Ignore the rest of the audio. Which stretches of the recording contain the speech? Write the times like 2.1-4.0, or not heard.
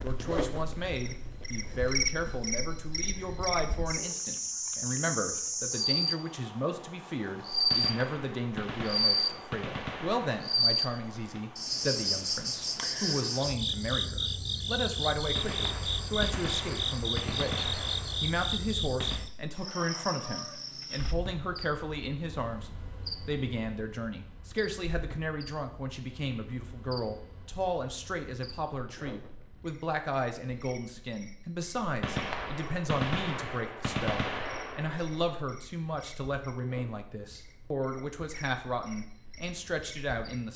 0.0-40.5.